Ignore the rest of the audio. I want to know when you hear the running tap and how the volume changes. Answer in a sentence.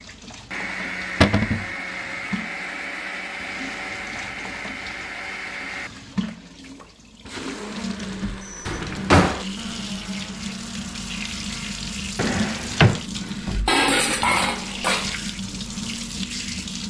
You can hear the running tap from 0.0 to 16.8 s, getting louder.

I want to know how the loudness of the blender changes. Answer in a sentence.
The loudness of the blender goes down.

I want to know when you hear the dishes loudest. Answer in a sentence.
The loudest moment of the dishes is at 14 seconds.